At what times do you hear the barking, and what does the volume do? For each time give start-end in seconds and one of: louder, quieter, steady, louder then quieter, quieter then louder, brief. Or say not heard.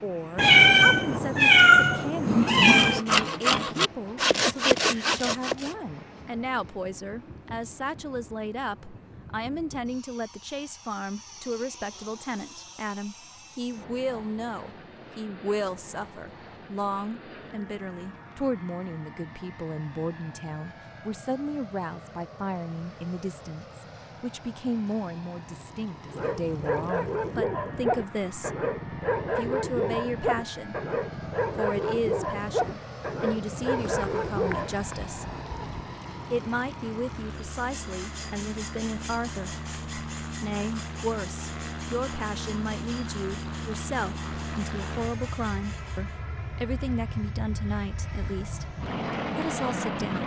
26.1-34.7 steady.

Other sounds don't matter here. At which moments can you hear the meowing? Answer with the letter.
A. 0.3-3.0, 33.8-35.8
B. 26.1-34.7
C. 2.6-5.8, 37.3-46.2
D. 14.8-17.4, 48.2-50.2
A.